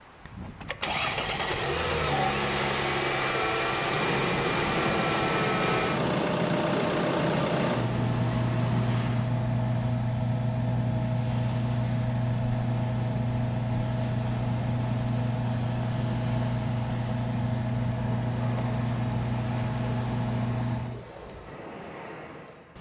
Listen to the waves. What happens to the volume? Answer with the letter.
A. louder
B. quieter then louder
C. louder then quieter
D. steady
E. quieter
E.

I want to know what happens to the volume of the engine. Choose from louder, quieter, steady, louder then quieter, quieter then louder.
steady.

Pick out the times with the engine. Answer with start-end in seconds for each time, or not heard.
0.0-21.0.